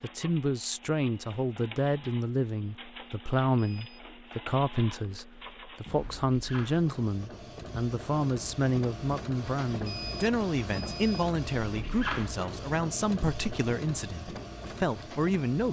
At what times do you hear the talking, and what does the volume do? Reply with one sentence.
You can hear the talking from 0.0 to 15.6 s, at a steady volume.